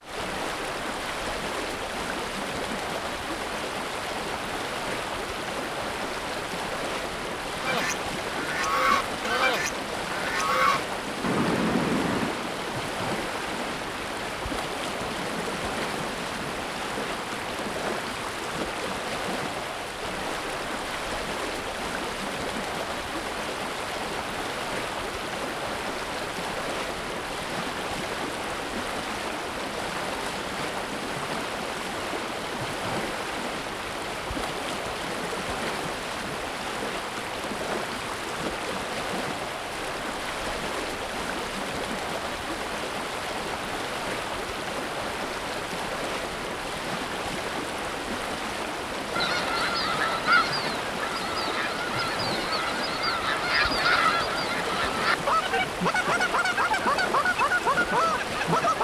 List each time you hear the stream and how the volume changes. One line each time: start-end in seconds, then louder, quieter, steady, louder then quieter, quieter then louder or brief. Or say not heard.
0.0-58.7 steady.